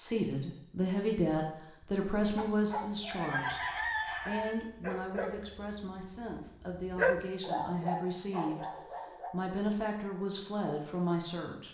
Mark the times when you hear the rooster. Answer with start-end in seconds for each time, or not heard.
3.0-4.5.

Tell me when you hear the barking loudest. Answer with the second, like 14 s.
7 s.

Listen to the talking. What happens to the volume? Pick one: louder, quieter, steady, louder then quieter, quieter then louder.
quieter then louder.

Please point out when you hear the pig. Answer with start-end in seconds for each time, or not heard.
not heard.